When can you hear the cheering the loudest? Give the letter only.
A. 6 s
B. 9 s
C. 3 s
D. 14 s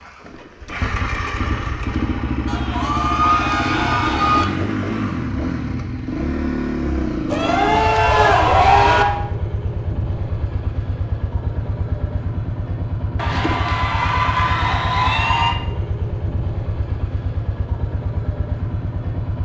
B.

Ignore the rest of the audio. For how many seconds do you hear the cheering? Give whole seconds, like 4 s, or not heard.
6 s.